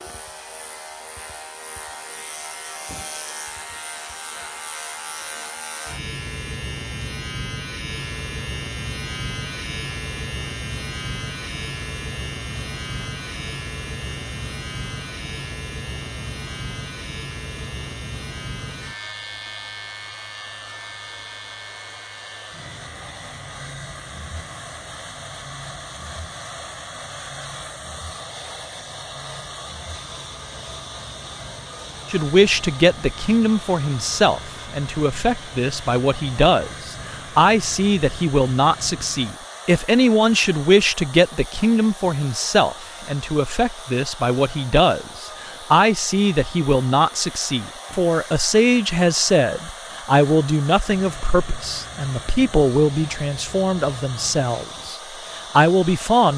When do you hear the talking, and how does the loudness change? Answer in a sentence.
You can hear the talking from 32.1 to 56.3 s, at a steady volume.